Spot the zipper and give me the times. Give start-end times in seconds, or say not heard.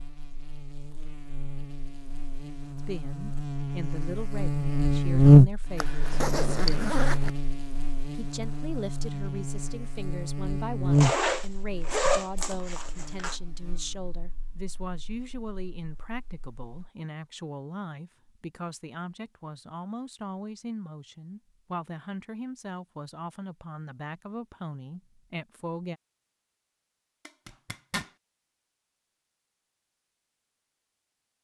5.8-7.3, 10.9-13.3, 27.2-28.1.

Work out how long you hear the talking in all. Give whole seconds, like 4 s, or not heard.
22 s.